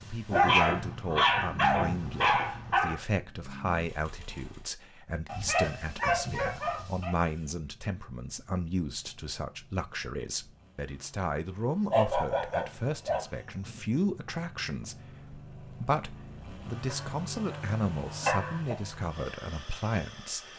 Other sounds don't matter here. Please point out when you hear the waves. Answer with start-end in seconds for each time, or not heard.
not heard.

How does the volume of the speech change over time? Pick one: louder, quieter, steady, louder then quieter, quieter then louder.
steady.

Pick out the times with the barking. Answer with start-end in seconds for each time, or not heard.
0.3-3.0, 5.2-7.2, 11.9-13.8, 16.9-17.6, 18.2-18.8.